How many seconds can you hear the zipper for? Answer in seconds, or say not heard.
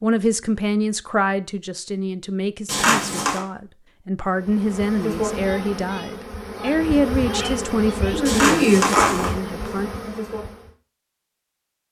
2 s.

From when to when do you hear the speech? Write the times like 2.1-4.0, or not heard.
0.0-9.9.